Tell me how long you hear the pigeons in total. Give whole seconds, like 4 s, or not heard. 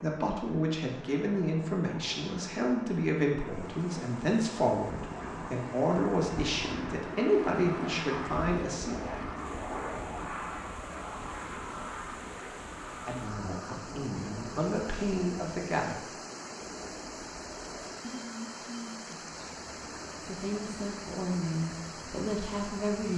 not heard.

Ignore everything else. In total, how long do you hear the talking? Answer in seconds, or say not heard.
17 s.